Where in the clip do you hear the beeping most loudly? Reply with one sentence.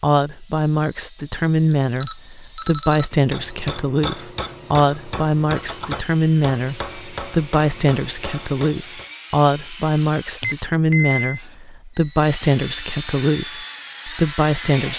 The loudest moment of the beeping is at 11 seconds.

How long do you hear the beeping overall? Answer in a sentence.
You can hear the beeping for 3 seconds altogether.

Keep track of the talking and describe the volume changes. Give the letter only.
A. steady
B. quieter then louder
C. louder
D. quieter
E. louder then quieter
A.